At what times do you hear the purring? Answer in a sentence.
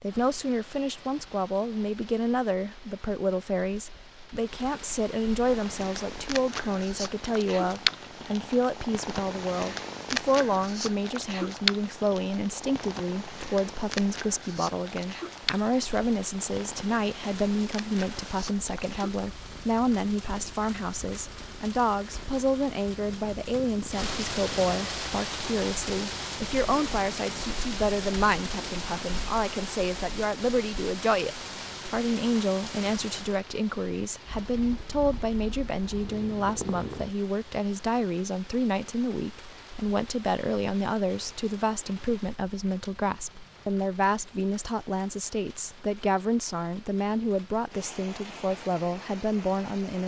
You can hear the purring from 5.4 to 29.4 s and from 34.2 to 37.1 s.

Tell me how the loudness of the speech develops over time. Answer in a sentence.
The loudness of the speech stays about the same.